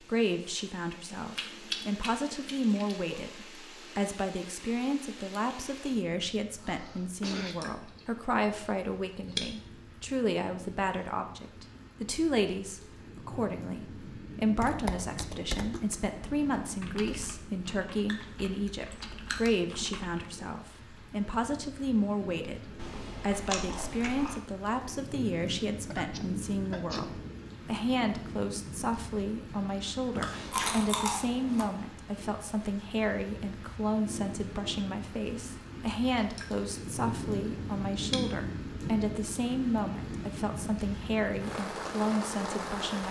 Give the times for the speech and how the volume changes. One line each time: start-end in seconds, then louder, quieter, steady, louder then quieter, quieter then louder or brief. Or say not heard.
0.1-43.0 steady.